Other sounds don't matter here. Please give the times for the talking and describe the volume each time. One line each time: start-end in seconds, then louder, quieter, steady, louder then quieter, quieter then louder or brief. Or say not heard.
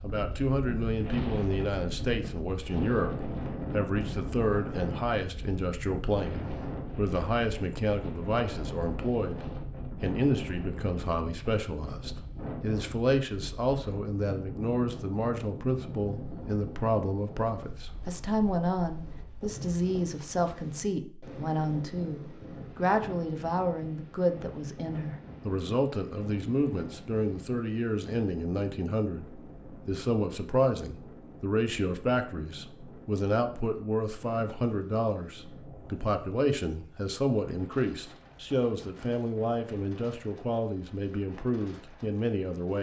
0.0-42.7 steady.